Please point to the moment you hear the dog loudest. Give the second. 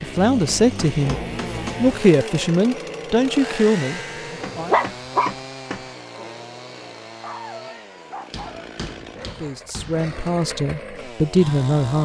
5 s.